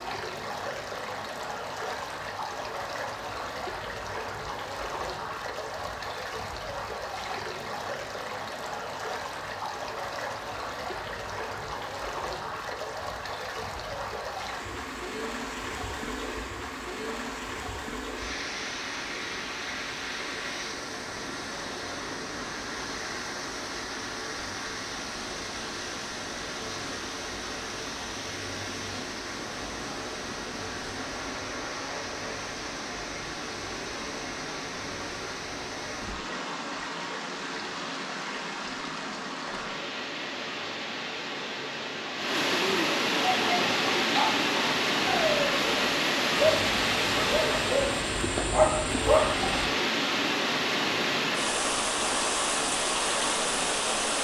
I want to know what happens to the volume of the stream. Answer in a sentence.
The loudness of the stream goes up.